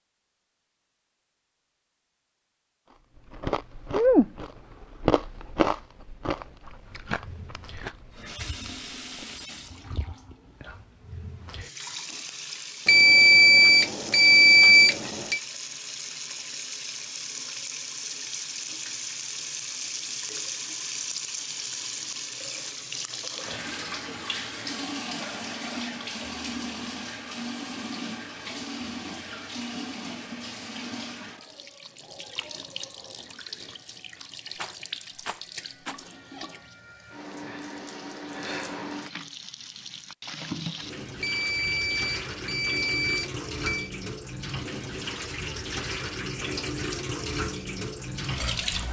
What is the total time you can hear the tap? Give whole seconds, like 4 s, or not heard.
42 s.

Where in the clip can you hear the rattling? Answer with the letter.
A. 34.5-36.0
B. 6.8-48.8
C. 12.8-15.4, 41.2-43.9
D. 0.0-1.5
A.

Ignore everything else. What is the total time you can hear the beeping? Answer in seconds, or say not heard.
5 s.